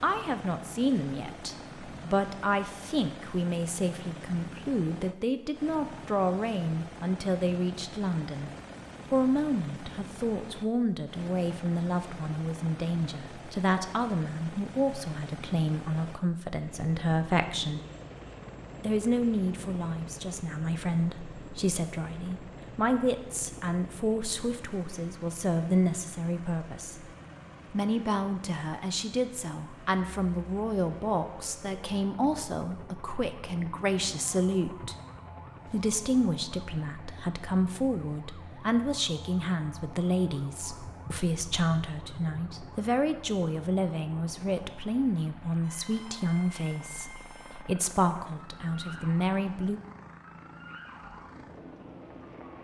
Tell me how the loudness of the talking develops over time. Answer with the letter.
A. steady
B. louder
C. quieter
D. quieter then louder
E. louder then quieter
A.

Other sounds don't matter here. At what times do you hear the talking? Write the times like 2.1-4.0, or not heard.
0.0-8.5, 9.1-17.8, 18.8-27.1, 27.7-35.0, 35.6-49.8.